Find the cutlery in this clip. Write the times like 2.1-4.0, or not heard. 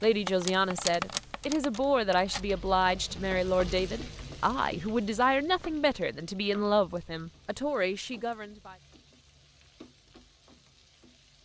0.0-2.5.